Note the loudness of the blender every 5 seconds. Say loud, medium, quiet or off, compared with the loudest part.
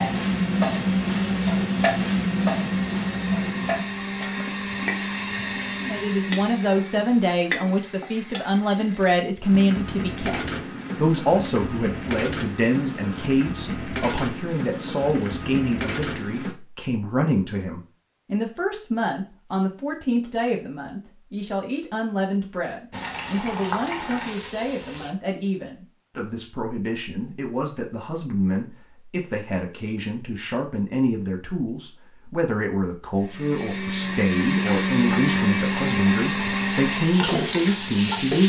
medium, medium, off, off, off, off, loud, loud.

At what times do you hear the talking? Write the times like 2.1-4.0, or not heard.
5.8-38.4.